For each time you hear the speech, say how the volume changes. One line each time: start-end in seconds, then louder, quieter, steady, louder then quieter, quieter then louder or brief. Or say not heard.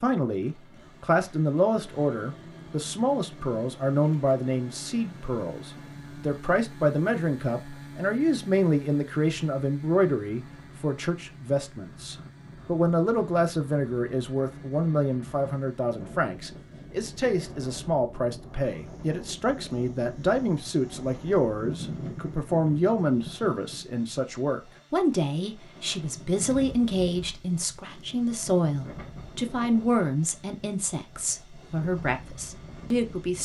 0.0-33.3 steady.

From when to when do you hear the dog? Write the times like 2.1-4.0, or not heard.
not heard.